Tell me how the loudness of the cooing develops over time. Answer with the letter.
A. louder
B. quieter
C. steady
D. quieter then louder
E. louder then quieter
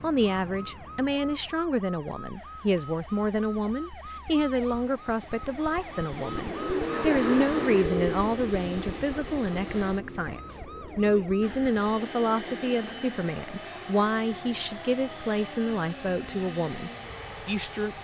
B.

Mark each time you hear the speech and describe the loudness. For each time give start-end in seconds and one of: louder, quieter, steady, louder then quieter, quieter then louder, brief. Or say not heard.
0.0-17.9 steady.